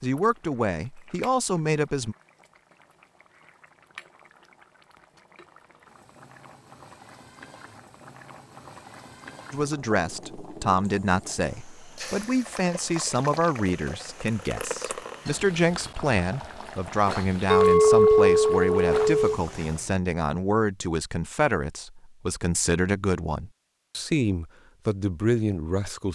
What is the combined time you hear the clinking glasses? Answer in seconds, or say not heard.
2 s.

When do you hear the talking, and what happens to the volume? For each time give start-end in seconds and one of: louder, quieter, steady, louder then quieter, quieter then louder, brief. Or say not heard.
0.0-2.1 brief
9.5-26.1 steady.